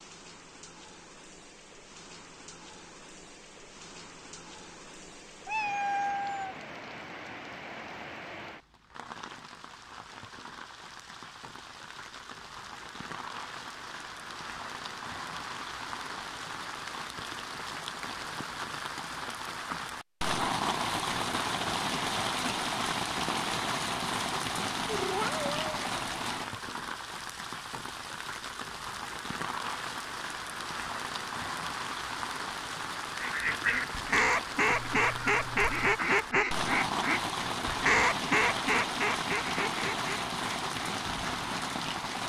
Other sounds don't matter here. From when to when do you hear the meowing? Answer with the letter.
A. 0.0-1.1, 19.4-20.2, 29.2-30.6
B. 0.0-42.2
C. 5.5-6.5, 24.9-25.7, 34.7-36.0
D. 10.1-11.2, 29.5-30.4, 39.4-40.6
C.